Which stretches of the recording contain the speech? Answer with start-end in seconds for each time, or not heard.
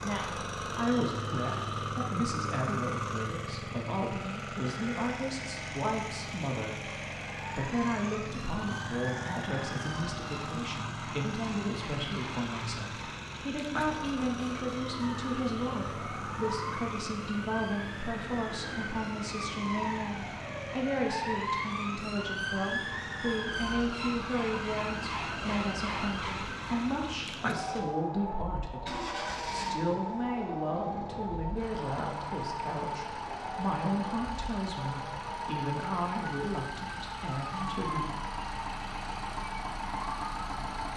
0.0-6.9, 7.5-38.0.